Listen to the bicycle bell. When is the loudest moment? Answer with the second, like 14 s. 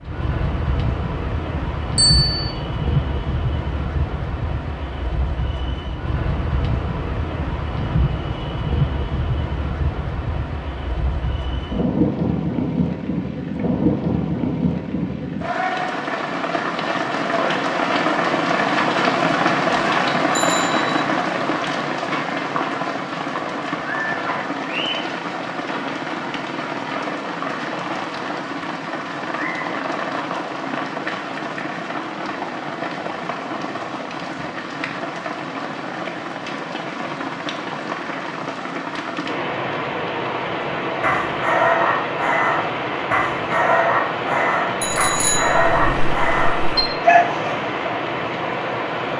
2 s.